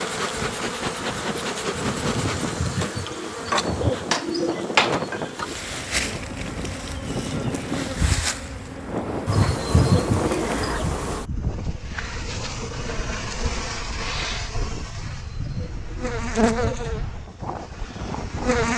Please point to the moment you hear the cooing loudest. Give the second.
10 s.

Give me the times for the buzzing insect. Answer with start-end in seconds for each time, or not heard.
0.0-18.7.